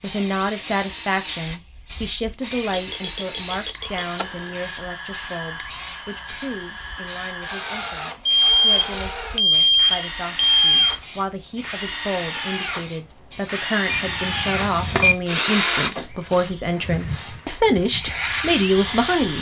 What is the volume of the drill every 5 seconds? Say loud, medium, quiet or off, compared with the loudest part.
medium, medium, loud, loud.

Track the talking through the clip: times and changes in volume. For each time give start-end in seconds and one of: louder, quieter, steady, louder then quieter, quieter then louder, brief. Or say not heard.
0.0-19.3 quieter then louder.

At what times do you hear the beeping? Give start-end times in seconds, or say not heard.
2.7-4.5, 8.2-11.0, 13.9-15.2.